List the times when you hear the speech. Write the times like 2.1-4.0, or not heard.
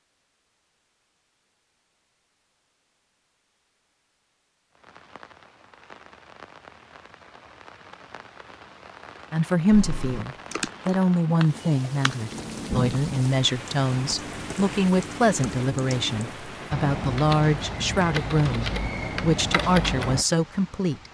9.3-21.0.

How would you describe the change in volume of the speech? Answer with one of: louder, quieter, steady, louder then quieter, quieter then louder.
steady.